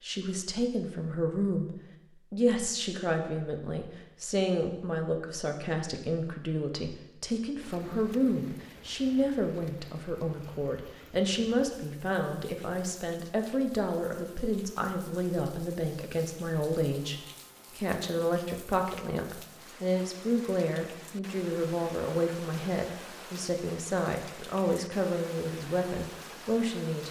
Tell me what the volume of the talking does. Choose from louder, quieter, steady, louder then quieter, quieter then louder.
steady.